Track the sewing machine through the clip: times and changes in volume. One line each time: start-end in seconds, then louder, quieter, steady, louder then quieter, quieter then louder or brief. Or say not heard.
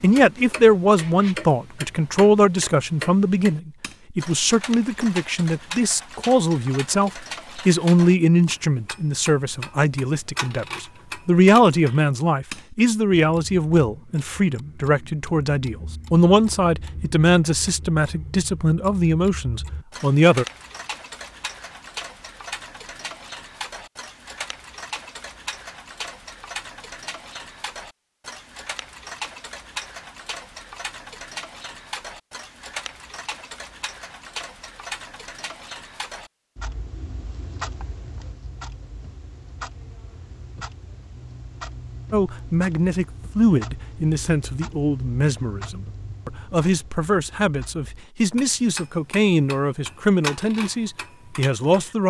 not heard.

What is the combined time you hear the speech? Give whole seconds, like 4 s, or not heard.
30 s.